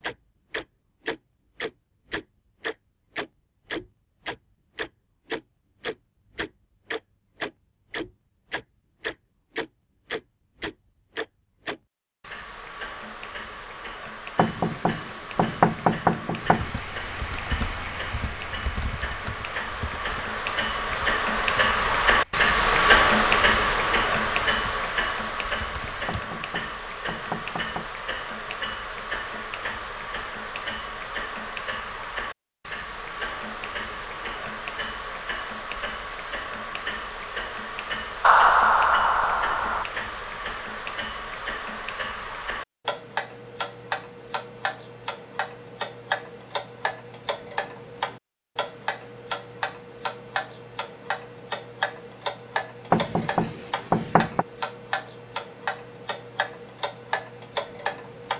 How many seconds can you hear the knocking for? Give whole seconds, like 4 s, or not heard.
6 s.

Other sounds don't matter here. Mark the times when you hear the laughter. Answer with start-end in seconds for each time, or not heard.
38.2-39.9.